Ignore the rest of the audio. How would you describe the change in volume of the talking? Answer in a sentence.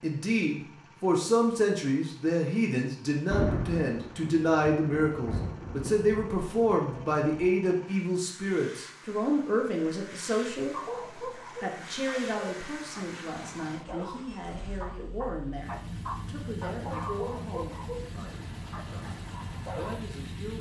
The loudness of the talking goes down.